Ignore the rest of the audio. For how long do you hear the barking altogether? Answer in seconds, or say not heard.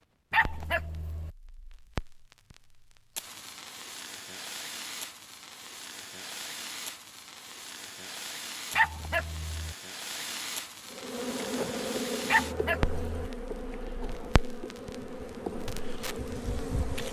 3 s.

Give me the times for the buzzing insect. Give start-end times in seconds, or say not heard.
10.9-17.0.